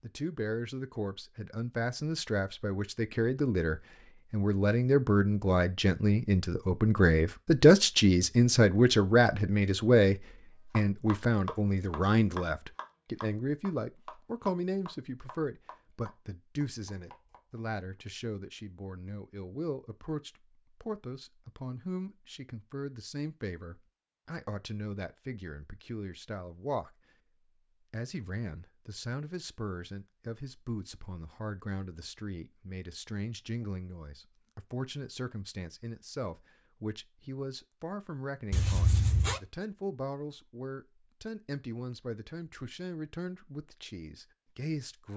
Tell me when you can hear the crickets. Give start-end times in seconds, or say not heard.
not heard.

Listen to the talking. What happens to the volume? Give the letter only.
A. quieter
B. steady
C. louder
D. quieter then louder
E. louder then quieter
A.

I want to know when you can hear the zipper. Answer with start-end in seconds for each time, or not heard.
38.5-39.4.